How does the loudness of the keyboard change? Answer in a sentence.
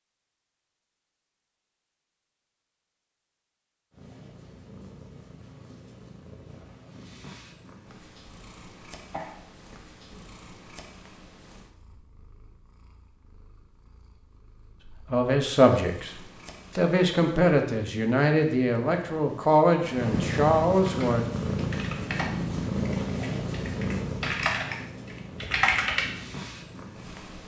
The loudness of the keyboard goes down, then up.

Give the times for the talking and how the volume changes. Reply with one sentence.
You can hear the talking from 15.1 to 21.2 s, at a steady volume.